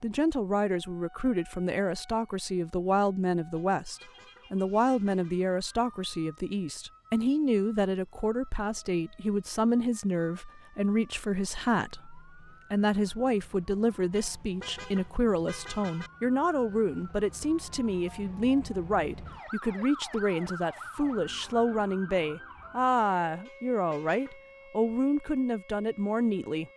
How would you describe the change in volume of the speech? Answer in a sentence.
The loudness of the speech stays about the same.